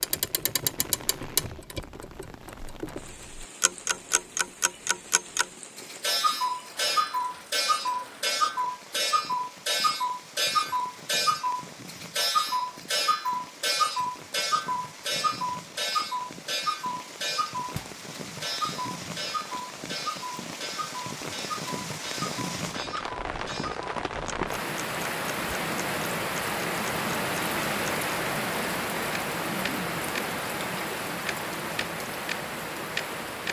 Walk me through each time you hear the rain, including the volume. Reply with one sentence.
You can hear the rain from 0.0 to 33.4 s, getting louder.